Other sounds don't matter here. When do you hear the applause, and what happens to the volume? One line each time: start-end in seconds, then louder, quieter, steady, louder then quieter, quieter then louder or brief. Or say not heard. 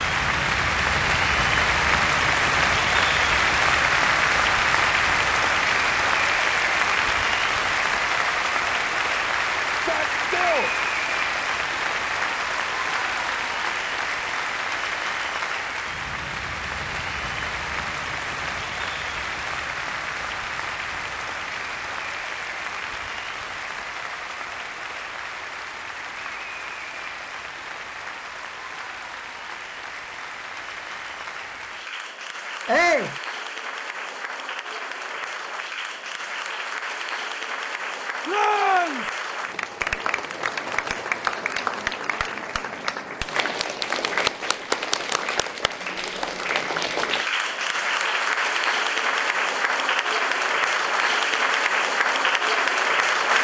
0.0-53.3 quieter then louder.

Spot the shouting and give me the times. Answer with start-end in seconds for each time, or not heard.
9.7-10.7, 32.6-33.1, 38.2-39.0.